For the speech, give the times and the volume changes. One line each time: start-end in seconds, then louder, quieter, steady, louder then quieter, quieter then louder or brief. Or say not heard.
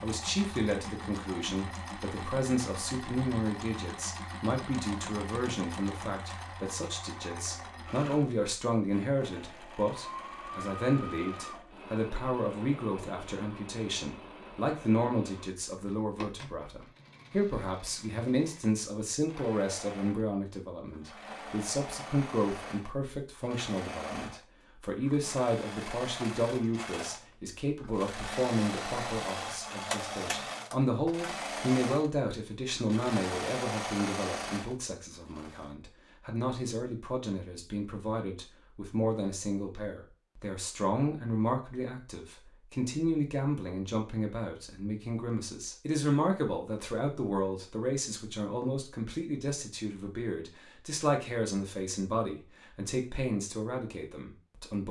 0.0-54.8 steady.